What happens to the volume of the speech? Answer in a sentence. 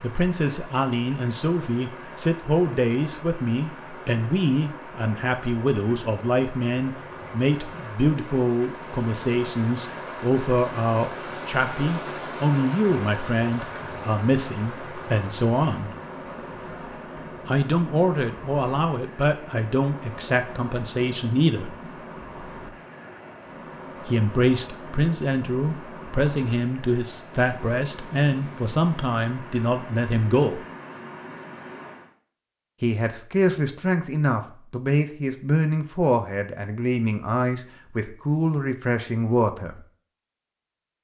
The volume of the speech stays about the same.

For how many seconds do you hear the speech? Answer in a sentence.
You can hear the speech for 34 seconds altogether.